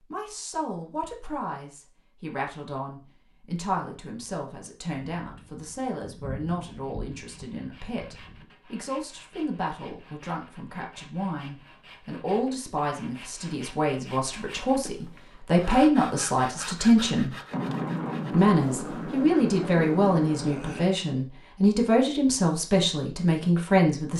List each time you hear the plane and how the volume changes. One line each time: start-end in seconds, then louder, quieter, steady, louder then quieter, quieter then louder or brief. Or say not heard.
not heard.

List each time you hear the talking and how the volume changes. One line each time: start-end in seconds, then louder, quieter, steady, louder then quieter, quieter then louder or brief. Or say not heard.
0.0-17.4 louder
18.3-24.1 steady.